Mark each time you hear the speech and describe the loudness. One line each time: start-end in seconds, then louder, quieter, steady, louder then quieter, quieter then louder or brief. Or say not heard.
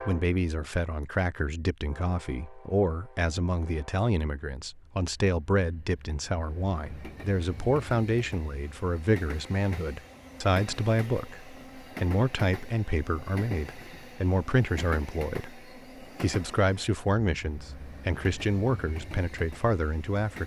0.1-20.4 steady.